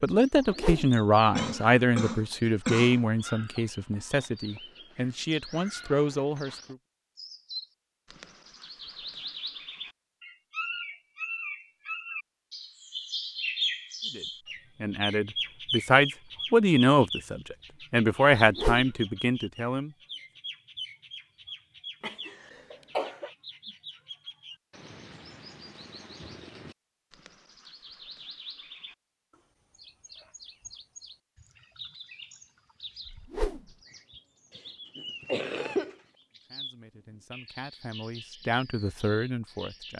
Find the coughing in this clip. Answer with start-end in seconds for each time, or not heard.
0.9-3.0, 22.0-23.3, 35.0-36.0.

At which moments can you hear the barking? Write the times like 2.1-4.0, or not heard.
not heard.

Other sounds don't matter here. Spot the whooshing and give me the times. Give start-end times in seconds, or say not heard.
0.4-0.8, 18.4-18.9, 33.0-33.6.